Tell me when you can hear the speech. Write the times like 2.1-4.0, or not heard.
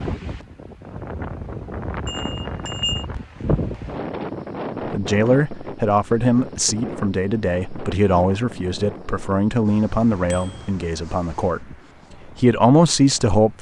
4.8-11.8, 12.4-13.5.